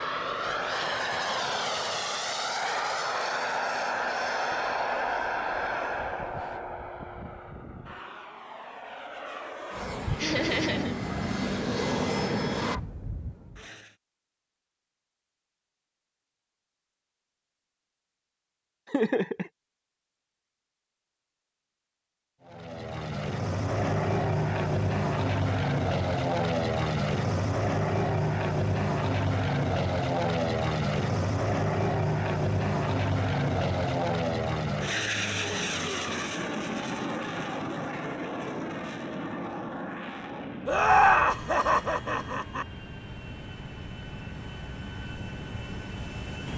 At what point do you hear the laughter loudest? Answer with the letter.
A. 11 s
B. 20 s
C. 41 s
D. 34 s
C.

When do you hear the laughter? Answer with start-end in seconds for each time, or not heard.
10.2-10.9, 18.9-19.5, 40.6-42.6.